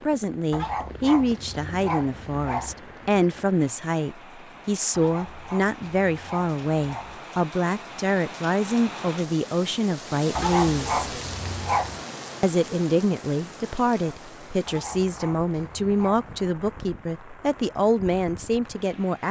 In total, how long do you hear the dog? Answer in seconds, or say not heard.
8 s.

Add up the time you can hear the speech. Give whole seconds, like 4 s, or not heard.
18 s.